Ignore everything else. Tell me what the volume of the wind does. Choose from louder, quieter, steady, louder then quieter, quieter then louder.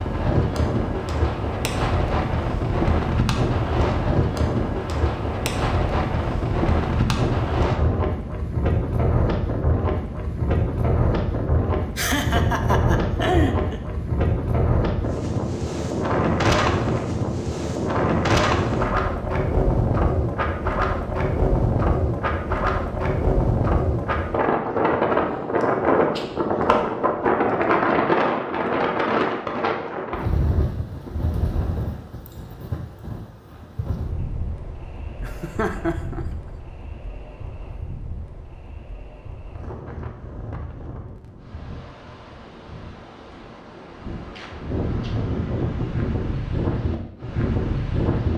quieter.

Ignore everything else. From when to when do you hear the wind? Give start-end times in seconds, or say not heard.
0.0-48.3.